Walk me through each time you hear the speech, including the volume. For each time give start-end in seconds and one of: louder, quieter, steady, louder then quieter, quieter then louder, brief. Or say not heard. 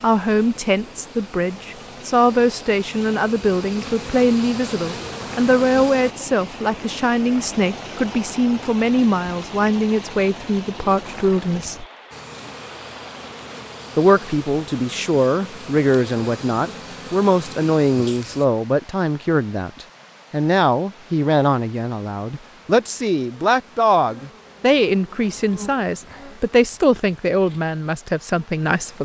0.0-11.8 steady
13.9-29.0 steady.